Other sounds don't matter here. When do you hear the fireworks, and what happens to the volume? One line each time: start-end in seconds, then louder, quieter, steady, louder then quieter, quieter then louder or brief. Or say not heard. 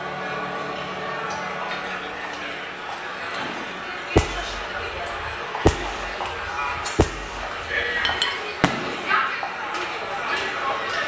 3.4-9.2 quieter then louder.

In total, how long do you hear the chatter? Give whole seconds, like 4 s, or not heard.
11 s.